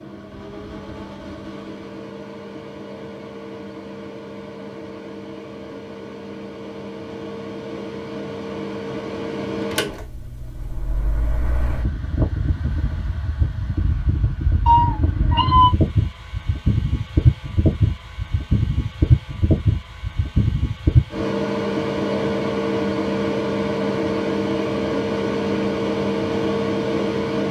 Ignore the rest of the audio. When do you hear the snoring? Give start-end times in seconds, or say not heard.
not heard.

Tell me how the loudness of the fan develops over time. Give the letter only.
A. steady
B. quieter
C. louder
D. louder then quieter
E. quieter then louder
C.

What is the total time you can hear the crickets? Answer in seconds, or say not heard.
not heard.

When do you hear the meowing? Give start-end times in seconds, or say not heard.
14.7-15.7.